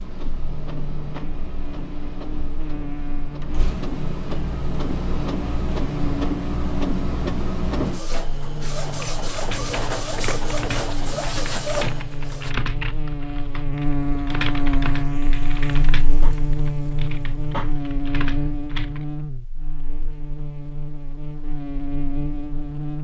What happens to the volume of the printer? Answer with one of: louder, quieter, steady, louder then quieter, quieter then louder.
louder.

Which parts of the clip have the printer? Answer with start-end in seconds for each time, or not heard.
0.0-12.6.